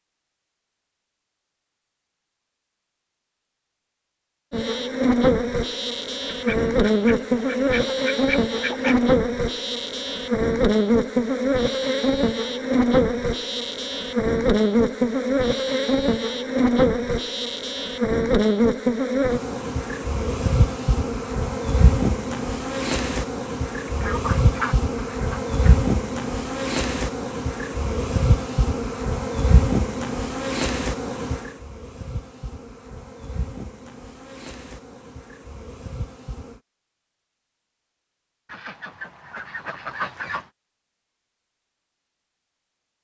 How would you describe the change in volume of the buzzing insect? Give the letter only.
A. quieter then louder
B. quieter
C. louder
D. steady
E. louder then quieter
B.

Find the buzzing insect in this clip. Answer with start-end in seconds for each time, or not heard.
4.5-36.6.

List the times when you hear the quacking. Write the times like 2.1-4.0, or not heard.
6.3-9.1, 23.9-25.8, 38.5-40.5.